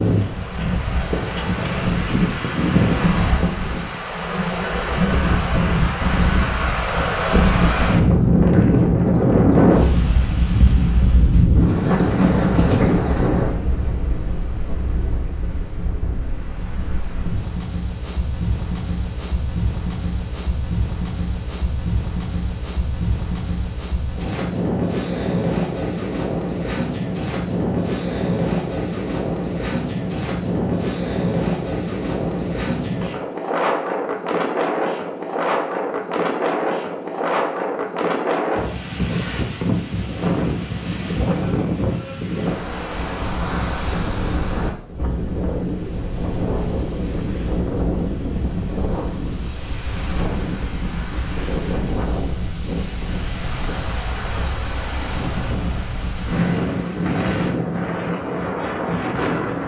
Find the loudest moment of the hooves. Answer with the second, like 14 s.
3 s.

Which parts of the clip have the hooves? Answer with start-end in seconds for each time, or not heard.
0.0-4.0.